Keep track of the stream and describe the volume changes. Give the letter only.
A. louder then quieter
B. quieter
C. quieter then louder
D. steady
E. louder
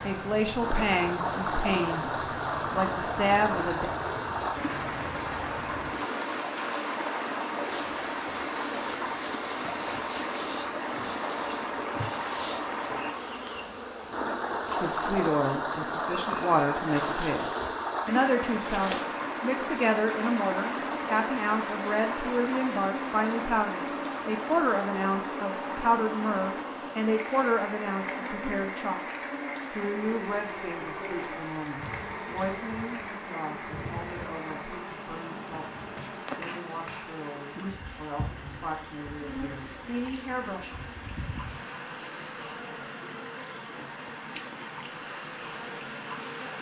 B.